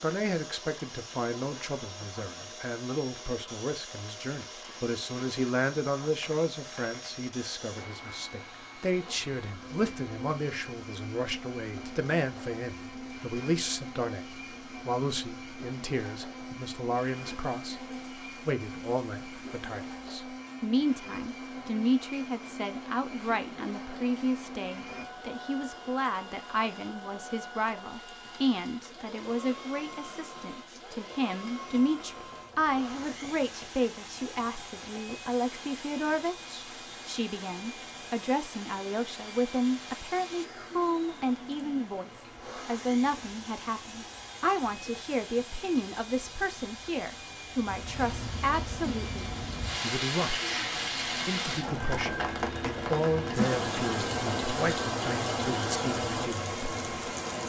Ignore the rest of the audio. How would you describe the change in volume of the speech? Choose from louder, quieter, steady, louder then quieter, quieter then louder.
steady.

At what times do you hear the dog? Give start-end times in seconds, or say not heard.
not heard.